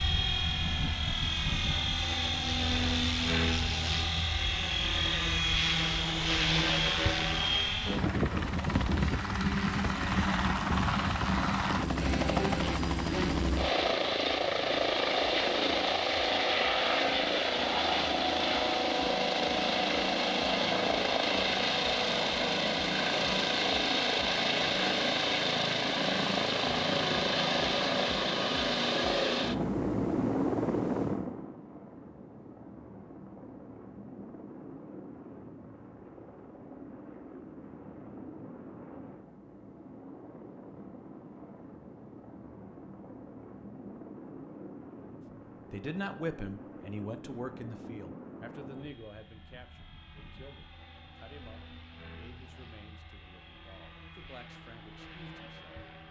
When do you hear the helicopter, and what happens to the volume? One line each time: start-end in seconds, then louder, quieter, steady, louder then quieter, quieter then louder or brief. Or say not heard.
0.0-56.0 quieter.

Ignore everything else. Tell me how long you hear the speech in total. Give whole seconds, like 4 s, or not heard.
10 s.